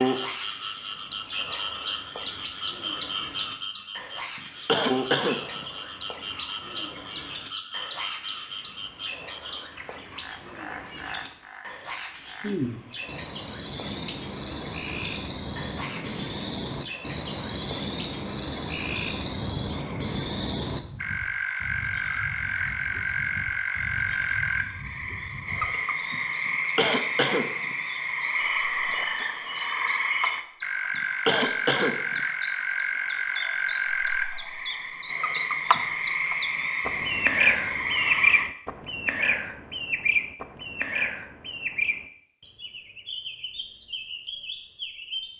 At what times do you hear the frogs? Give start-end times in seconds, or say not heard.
0.0-38.5.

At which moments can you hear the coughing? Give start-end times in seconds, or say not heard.
4.7-5.7, 26.4-27.8, 31.2-32.2.